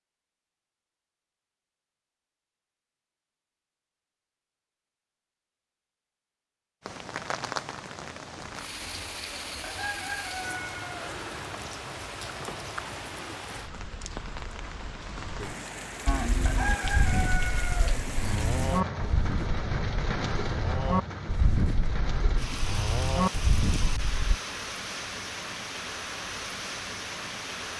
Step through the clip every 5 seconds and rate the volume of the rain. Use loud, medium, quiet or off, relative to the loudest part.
off, loud, loud, loud, loud, loud.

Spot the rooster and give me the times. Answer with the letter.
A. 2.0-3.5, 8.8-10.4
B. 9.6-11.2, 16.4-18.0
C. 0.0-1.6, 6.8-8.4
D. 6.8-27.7
B.